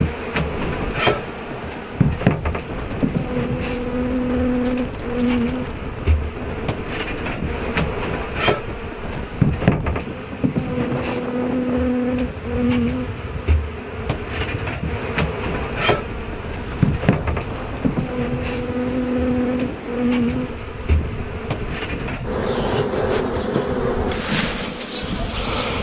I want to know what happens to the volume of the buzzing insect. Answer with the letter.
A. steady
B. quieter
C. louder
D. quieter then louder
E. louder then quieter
A.